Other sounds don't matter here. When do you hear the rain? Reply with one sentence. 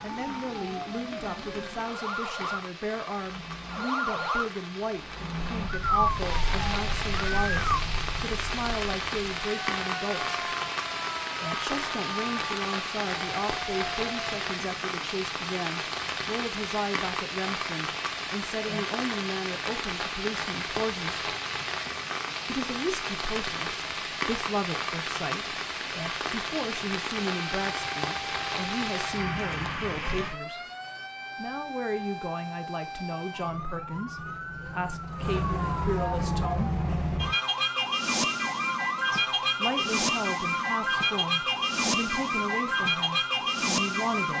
The rain can be heard from 0.0 to 30.4 s.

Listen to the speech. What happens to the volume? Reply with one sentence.
The volume of the speech stays about the same.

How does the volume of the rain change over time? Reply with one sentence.
The loudness of the rain goes up.